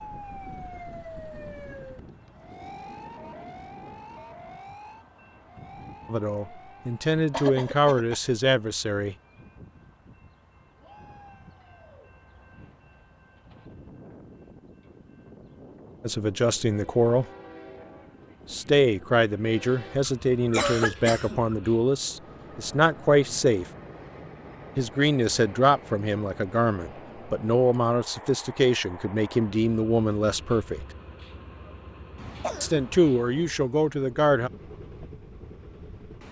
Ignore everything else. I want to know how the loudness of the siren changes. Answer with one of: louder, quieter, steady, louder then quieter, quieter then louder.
quieter.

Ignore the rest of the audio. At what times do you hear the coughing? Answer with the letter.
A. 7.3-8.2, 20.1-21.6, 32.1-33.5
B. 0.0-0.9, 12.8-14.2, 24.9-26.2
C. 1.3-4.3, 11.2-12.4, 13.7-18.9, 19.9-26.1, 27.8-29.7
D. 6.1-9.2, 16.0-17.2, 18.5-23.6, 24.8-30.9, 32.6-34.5
A.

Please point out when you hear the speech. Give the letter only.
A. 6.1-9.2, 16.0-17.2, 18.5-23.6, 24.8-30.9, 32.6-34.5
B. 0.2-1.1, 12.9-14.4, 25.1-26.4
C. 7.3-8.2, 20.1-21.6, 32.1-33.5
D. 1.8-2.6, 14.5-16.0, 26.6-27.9
A.